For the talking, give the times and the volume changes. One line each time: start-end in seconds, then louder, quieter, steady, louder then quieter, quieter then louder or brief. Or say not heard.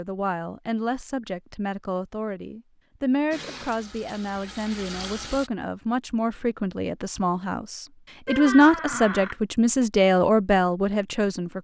0.0-11.5 louder.